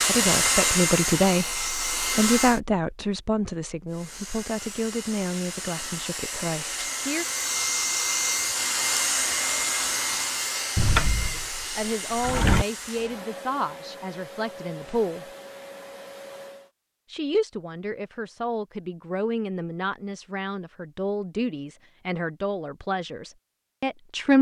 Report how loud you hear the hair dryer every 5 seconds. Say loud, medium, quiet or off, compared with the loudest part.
loud, loud, medium, quiet, off.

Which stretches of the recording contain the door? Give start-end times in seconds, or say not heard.
10.8-12.7.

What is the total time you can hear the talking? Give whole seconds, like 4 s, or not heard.
18 s.